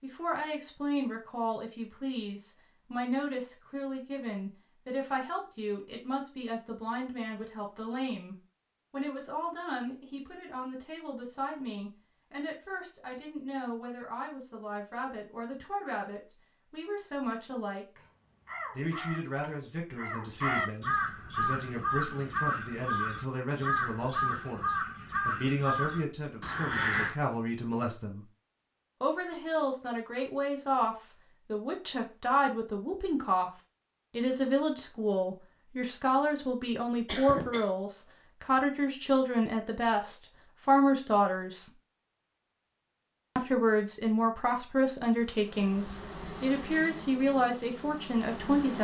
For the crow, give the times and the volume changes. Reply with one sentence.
The crow can be heard from 18.0 to 27.1 s, getting louder.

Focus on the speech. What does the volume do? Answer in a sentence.
The loudness of the speech goes up.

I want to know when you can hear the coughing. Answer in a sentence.
You can hear the coughing from 37.0 to 37.7 s.